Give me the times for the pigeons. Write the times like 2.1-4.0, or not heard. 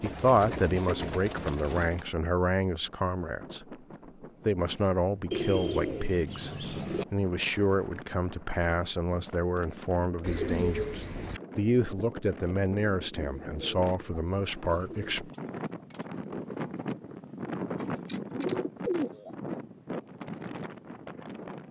0.0-2.0, 5.3-7.0, 10.2-11.4, 13.2-15.2, 17.8-19.3.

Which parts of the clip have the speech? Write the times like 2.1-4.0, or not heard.
0.0-3.8, 4.5-15.3.